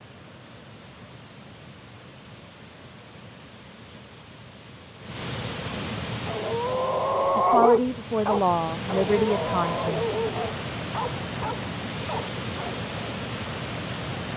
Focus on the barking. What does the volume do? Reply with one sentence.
The loudness of the barking goes down.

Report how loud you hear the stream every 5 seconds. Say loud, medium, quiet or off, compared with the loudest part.
quiet, loud, loud.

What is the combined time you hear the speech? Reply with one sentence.
You can hear the speech for 3 seconds altogether.